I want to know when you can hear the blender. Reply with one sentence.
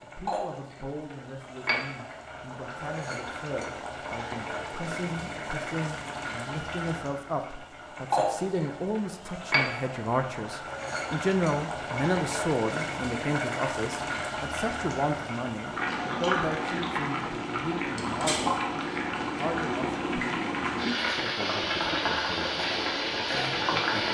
You can't hear the blender here.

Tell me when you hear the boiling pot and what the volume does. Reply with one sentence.
The boiling pot can be heard from 0.0 to 24.1 s, getting louder.